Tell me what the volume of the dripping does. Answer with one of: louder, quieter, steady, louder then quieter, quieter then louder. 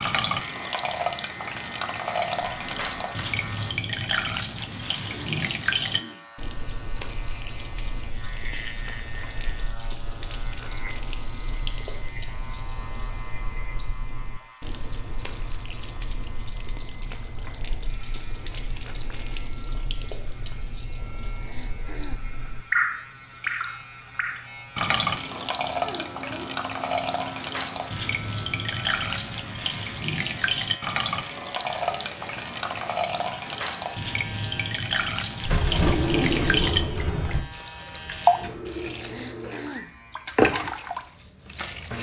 quieter then louder.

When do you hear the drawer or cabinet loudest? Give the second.
36 s.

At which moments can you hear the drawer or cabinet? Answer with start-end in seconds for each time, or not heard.
2.6-3.2, 35.4-37.4.